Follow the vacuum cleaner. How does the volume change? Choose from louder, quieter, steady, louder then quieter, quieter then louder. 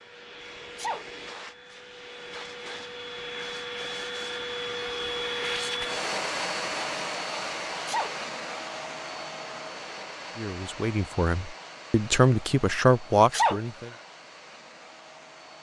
louder then quieter.